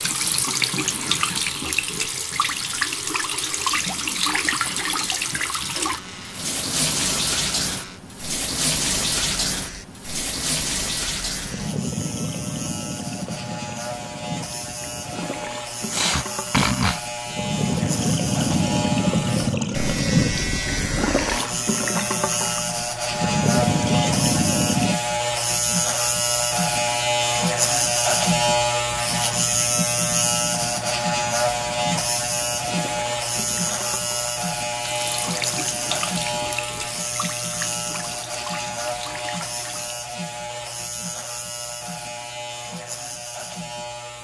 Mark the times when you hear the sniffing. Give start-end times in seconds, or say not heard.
15.9-17.0.